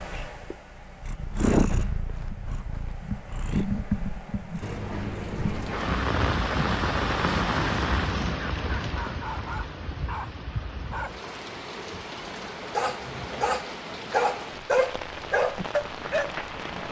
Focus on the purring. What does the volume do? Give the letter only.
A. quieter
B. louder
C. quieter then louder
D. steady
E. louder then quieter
A.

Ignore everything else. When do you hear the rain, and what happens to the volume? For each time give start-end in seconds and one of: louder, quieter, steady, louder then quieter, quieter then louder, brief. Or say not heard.
4.6-16.8 quieter.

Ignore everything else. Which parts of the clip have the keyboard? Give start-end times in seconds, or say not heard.
not heard.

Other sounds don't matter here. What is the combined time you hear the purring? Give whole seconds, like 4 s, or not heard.
9 s.